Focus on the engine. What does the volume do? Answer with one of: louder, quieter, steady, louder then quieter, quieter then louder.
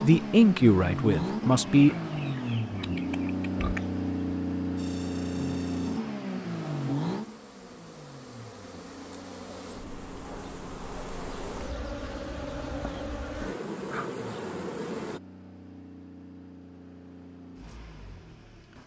quieter.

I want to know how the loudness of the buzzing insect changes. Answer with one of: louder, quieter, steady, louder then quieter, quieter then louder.
louder.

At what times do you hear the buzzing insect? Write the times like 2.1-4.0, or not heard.
4.8-15.2.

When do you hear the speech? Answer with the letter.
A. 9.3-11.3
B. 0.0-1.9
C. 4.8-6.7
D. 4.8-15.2
B.